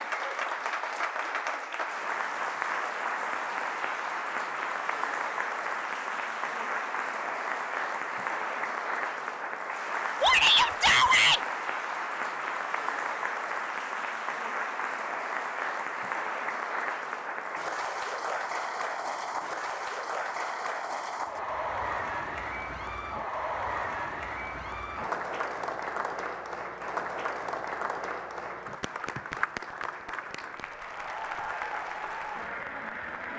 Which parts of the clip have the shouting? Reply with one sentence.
You can hear the shouting from 10.2 to 11.4 s.